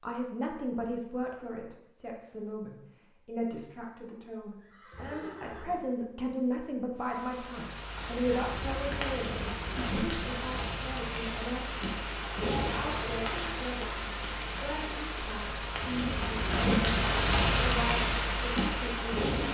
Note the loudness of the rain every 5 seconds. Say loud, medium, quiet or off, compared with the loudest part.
off, medium, medium, loud.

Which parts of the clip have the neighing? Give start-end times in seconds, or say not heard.
4.6-5.8.